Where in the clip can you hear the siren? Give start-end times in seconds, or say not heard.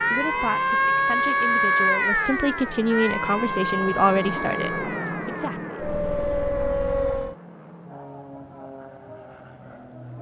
0.0-7.3.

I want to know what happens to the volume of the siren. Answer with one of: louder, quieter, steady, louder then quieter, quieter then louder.
quieter then louder.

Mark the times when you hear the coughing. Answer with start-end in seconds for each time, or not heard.
not heard.